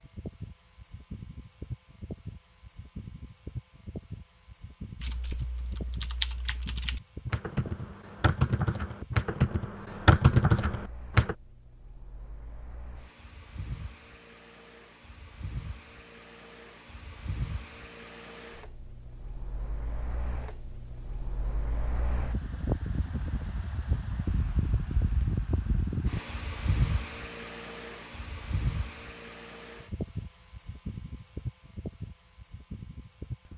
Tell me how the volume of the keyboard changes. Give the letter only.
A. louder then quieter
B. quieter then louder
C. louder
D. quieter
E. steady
C.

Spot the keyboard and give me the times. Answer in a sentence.
You can hear the keyboard from 5.0 to 11.3 s.